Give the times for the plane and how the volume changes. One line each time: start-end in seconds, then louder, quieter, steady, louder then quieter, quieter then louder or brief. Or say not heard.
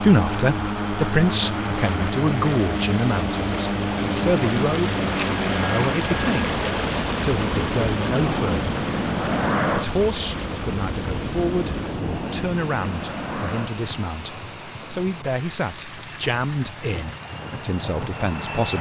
0.0-18.7 quieter.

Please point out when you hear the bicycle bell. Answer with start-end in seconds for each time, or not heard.
5.2-6.6.